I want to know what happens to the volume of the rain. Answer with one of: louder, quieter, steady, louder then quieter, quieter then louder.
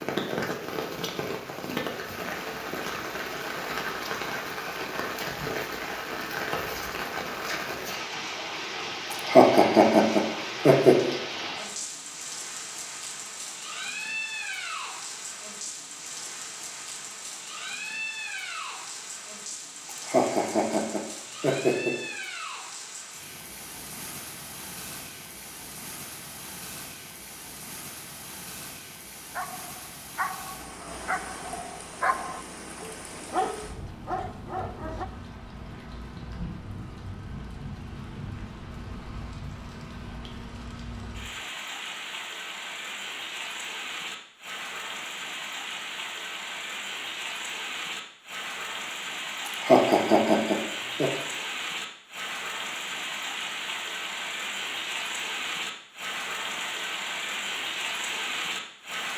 quieter then louder.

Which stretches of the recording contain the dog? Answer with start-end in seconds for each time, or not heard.
29.3-35.0.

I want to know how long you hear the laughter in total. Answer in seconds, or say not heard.
6 s.